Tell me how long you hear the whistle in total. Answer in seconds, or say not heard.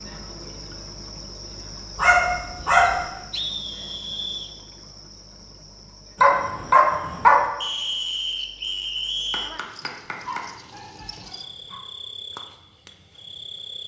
4 s.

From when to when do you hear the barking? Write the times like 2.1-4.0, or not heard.
1.9-3.0, 6.2-7.5, 9.3-11.8.